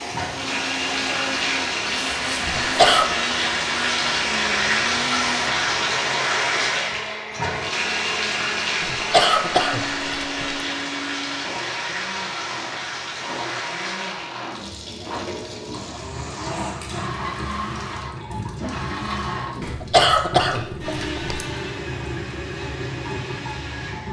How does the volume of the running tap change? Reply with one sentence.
The loudness of the running tap goes down.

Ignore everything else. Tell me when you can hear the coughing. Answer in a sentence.
The coughing can be heard from 2.5 to 3.1 s, from 8.8 to 10.6 s and from 19.6 to 21.4 s.